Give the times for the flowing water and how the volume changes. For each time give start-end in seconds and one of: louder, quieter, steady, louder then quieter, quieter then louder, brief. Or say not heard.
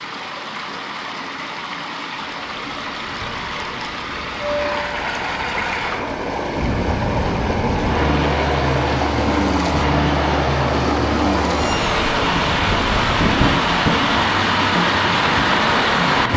0.0-16.3 louder.